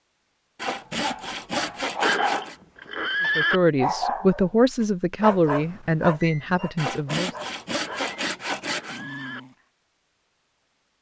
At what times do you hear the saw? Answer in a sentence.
The saw can be heard from 0.6 to 2.5 s and from 6.8 to 9.1 s.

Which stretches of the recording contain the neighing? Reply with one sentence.
The neighing can be heard from 2.0 to 3.6 s and from 7.8 to 9.4 s.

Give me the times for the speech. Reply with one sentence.
You can hear the speech from 3.4 to 7.3 s.